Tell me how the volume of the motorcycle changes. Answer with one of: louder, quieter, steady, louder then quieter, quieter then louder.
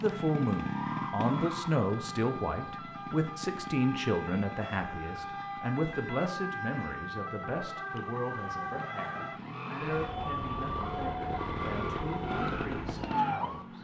quieter then louder.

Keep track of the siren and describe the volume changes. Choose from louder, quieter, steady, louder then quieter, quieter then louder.
louder.